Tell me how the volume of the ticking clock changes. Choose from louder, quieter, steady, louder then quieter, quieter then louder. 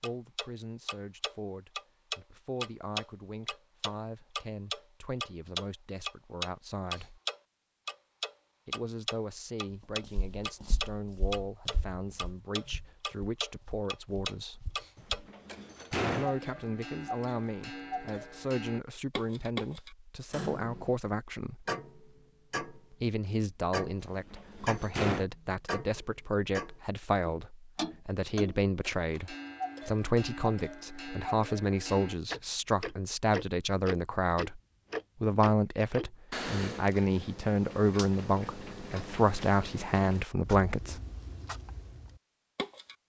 quieter.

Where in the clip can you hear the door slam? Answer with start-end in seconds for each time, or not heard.
14.9-16.4, 24.0-25.2.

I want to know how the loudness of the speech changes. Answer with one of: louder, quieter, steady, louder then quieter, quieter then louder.
louder.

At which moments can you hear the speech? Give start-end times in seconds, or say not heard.
0.0-7.2, 8.7-14.7, 16.1-21.6, 22.9-34.6, 35.2-41.0.